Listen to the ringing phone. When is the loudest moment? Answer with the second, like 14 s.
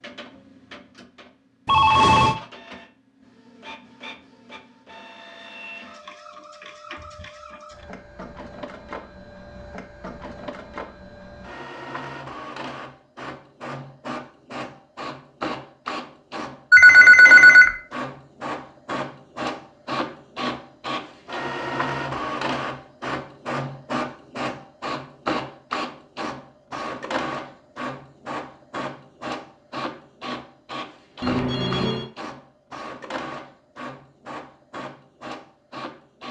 17 s.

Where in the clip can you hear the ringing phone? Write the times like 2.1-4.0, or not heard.
1.6-2.4, 16.7-17.7, 31.2-32.0.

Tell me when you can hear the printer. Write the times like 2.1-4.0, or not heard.
0.0-36.2.